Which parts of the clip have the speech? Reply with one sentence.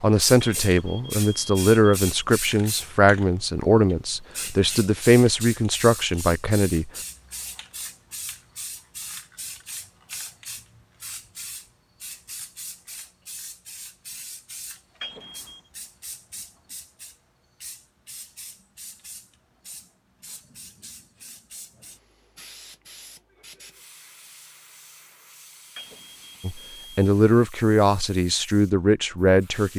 The speech can be heard from 0.0 to 6.9 s and from 26.4 to 29.7 s.